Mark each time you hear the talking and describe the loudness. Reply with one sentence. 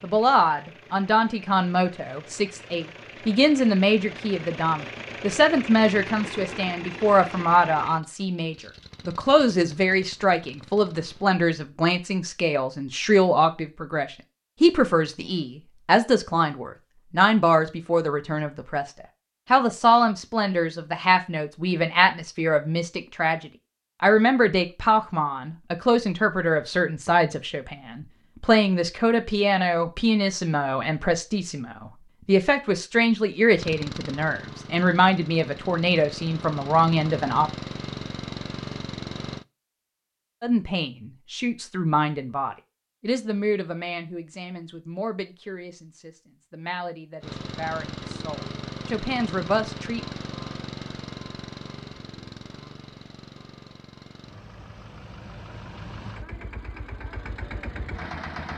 The talking can be heard from 0.0 to 37.5 s, at a steady volume; and from 40.4 to 50.0 s, getting quieter then louder.